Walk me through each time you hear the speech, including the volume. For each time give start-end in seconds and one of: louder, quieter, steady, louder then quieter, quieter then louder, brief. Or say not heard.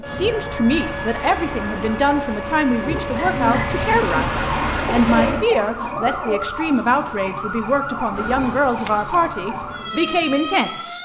0.0-11.0 steady.